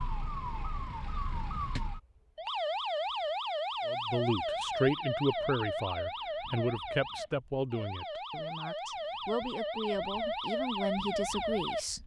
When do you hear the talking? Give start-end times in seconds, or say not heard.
3.9-12.0.